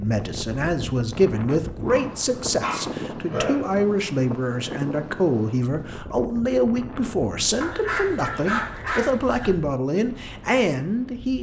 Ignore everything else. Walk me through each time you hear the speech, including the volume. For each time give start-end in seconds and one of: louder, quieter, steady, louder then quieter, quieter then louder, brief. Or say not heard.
0.0-11.3 steady.